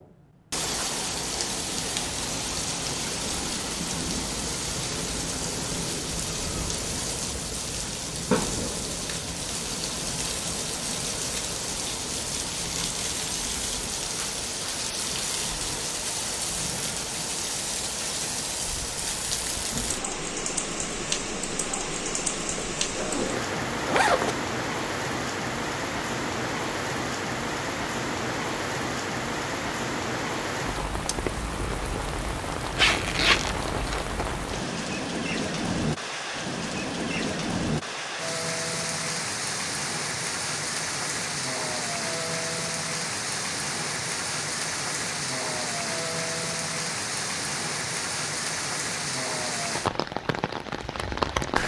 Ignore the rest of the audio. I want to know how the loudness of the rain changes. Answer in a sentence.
The volume of the rain stays about the same.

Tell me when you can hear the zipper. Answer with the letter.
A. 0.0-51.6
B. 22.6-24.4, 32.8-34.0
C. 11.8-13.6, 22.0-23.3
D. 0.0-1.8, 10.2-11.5
B.